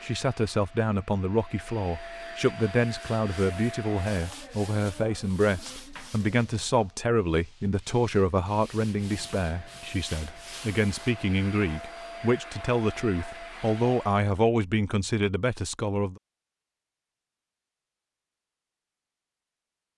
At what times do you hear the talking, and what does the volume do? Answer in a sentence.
The talking can be heard from 0.0 to 16.2 s, at a steady volume.